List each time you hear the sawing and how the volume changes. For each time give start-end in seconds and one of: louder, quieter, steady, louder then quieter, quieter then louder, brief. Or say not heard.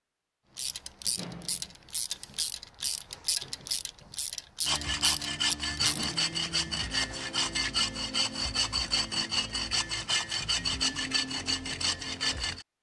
4.7-12.7 steady.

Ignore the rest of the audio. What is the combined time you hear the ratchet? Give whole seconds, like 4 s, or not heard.
6 s.